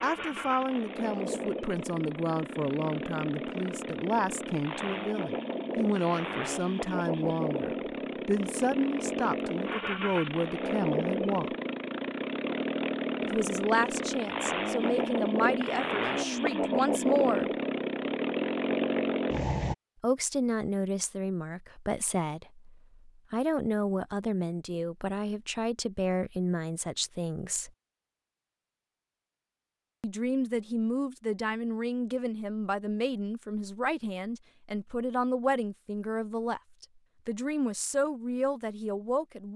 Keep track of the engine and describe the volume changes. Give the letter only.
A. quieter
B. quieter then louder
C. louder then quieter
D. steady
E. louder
E.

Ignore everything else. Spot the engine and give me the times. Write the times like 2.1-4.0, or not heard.
0.0-19.8.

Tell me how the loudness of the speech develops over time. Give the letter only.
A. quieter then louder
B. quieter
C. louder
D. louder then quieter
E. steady
E.